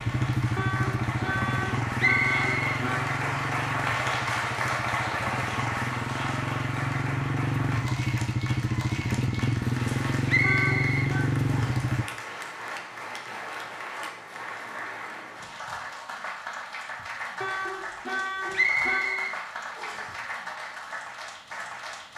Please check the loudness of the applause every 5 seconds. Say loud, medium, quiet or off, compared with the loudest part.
loud, loud, medium, medium, medium.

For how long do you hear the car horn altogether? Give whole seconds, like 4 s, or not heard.
5 s.